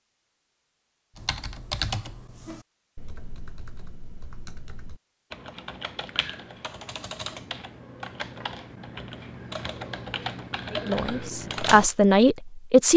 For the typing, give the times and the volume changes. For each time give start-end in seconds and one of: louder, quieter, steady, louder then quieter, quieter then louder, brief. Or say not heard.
1.1-11.9 quieter then louder.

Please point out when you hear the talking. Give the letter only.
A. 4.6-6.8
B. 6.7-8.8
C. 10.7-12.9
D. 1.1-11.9
C.